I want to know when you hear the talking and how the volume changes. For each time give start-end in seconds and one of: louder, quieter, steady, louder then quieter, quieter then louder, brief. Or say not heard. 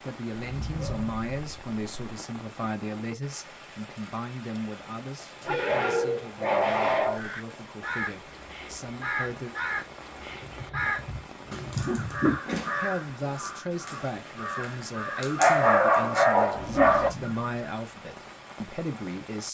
0.0-9.6 quieter
12.8-19.4 steady.